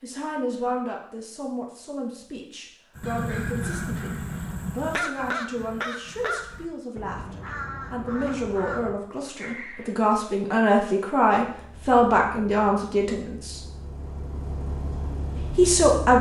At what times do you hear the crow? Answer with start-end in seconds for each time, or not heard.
3.0-9.9.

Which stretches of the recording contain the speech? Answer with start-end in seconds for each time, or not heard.
0.0-13.6, 15.6-16.1.